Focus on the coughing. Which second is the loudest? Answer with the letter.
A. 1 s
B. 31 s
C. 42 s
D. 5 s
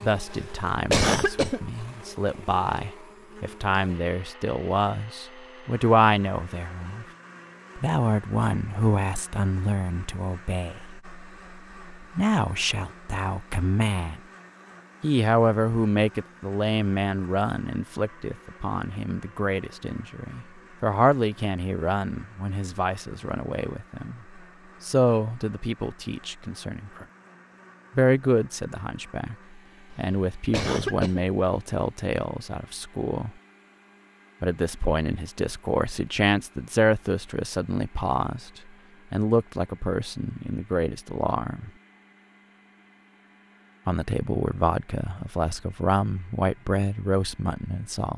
A.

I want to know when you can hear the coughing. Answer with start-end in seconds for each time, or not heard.
0.2-1.7, 29.9-31.3.